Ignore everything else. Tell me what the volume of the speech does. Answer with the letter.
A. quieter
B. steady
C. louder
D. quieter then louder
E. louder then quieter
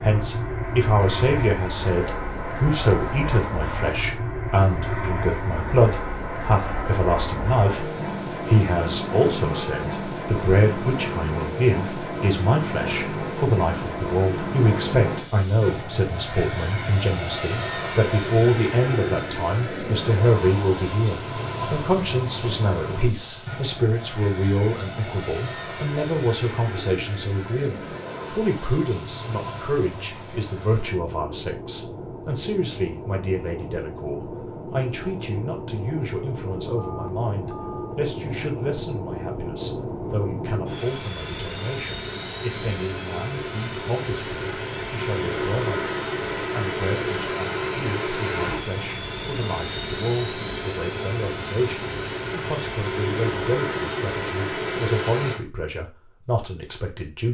A.